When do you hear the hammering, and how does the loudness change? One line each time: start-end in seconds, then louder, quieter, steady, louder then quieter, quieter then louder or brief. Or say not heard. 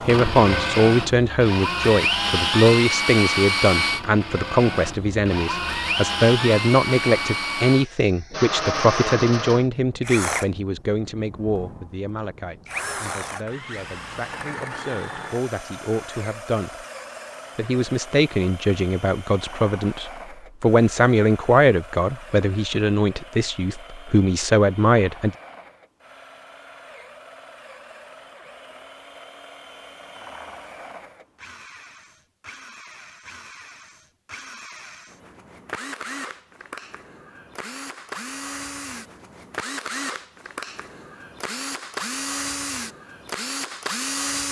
not heard.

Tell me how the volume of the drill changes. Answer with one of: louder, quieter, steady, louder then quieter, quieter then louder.
quieter then louder.